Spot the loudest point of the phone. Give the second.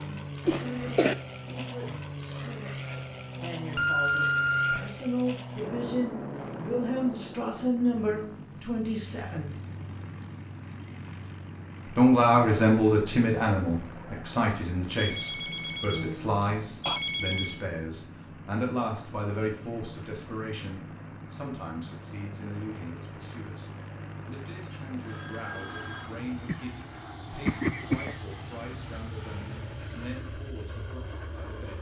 4 s.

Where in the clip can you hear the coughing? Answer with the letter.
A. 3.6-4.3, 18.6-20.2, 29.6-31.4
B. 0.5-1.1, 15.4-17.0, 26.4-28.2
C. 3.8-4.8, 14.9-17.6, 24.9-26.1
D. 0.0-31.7
B.